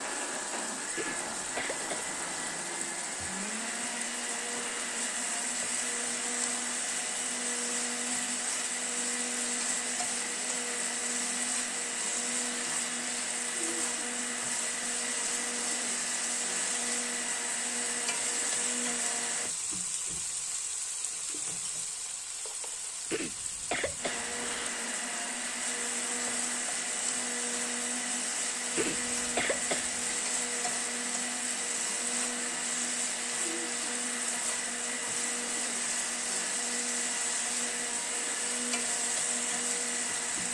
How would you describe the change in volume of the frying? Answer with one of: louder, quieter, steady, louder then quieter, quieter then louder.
steady.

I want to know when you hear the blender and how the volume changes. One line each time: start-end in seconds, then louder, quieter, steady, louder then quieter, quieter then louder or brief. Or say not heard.
0.0-19.6 steady
23.9-40.4 steady.